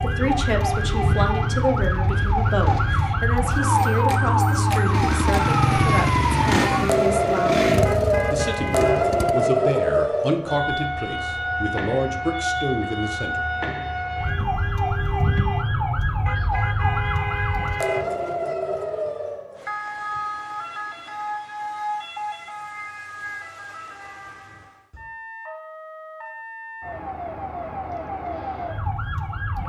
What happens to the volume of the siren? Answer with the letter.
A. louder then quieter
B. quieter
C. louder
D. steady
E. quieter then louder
B.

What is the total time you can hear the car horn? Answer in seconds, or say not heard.
3 s.